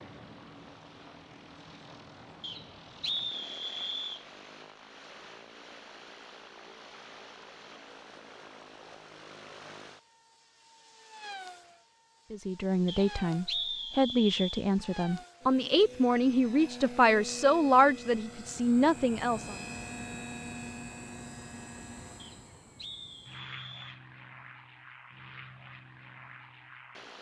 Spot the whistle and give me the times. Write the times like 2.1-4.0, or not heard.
2.4-4.2, 12.8-14.7, 22.1-24.0.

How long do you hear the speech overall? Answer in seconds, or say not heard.
7 s.